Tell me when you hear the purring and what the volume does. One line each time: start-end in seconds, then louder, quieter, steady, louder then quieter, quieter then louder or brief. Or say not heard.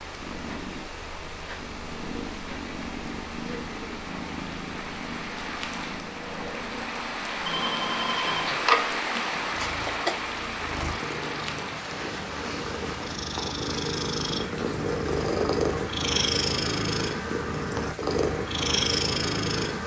0.0-19.8 louder.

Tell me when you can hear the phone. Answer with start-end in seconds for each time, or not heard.
7.5-8.9.